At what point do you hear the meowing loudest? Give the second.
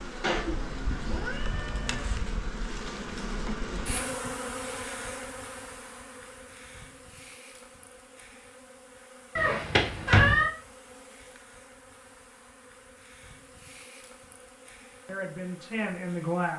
10 s.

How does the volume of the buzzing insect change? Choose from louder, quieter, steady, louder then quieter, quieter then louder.
quieter.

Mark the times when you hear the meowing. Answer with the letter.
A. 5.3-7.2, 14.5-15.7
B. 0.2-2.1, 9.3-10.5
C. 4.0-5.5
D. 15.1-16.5
B.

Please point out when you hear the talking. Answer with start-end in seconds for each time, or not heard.
15.1-16.5.